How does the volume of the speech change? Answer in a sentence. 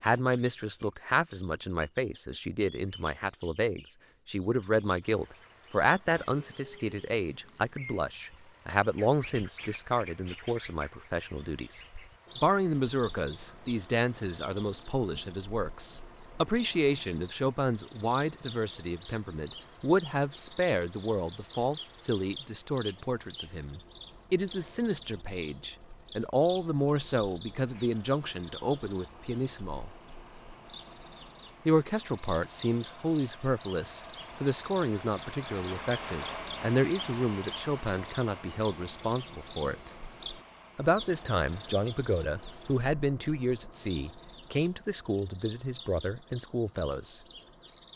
The volume of the speech stays about the same.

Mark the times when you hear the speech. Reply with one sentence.
The speech can be heard from 0.0 to 29.9 s, from 31.6 to 39.9 s and from 40.8 to 47.2 s.